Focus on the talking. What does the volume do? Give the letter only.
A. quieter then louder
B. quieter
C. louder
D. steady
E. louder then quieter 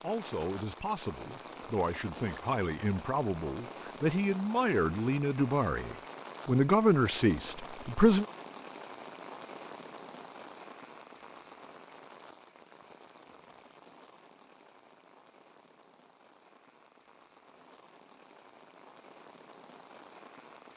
C.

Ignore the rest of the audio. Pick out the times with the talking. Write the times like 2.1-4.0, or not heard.
0.0-8.2.